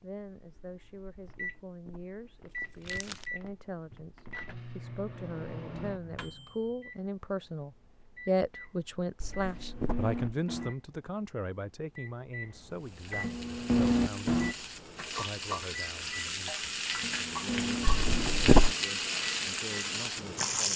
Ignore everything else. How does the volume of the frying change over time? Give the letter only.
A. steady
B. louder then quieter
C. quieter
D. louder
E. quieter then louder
D.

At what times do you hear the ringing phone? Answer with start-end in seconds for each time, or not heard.
not heard.